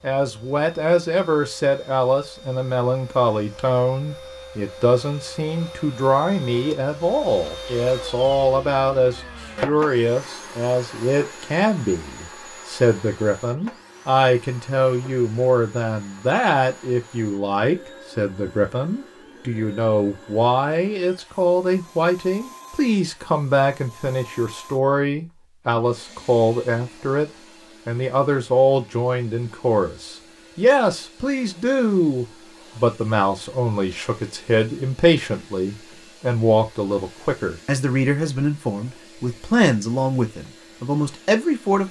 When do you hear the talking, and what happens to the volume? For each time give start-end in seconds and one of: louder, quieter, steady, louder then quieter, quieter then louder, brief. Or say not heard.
0.0-41.8 steady.